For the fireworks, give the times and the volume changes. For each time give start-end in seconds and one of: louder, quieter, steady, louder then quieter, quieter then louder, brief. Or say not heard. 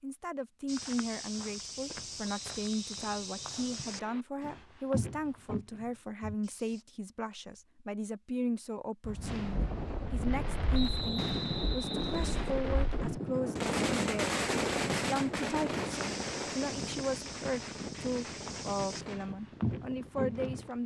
9.2-19.2 louder then quieter.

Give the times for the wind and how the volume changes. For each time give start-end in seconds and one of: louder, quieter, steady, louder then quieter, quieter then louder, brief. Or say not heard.
9.0-20.8 quieter.